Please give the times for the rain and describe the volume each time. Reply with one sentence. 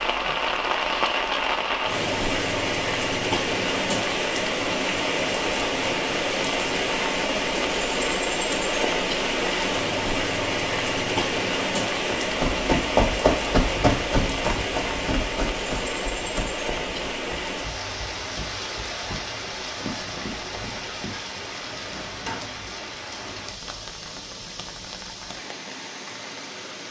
You can hear the rain from 0.0 to 26.8 s, getting quieter.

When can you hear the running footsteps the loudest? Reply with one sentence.
The loudest moment of the running footsteps is at 13 seconds.